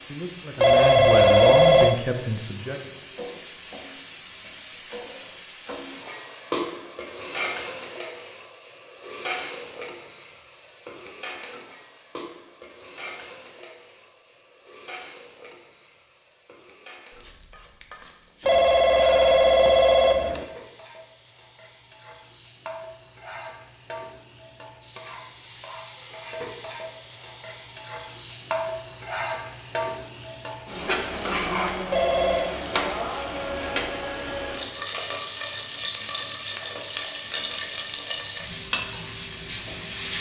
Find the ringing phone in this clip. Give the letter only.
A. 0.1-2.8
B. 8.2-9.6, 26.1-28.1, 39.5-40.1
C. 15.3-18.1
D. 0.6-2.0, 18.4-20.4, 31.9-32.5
D.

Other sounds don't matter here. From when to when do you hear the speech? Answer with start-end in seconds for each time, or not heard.
0.1-2.8.